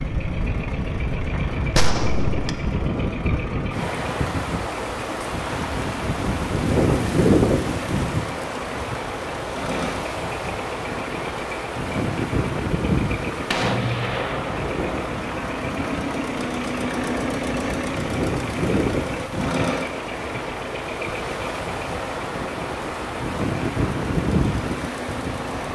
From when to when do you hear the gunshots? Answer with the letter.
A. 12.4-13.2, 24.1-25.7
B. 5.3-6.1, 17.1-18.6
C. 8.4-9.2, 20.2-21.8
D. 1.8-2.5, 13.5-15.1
D.